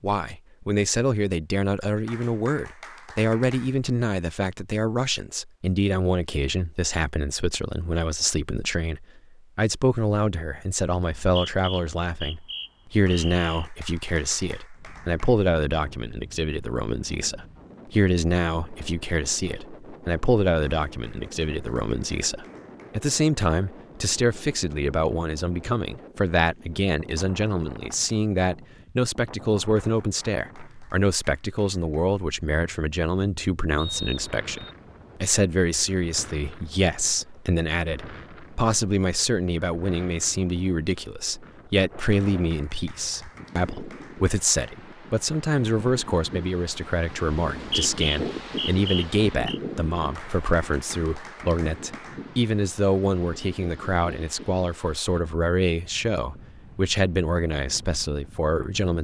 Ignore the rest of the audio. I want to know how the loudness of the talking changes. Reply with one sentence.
The loudness of the talking stays about the same.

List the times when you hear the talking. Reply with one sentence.
The talking can be heard from 0.0 to 59.0 s.